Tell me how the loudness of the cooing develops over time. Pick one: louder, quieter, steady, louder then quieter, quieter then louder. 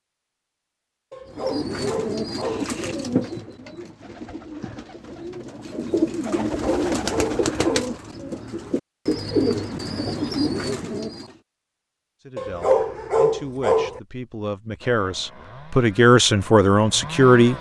quieter then louder.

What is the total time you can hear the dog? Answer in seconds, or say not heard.
5 s.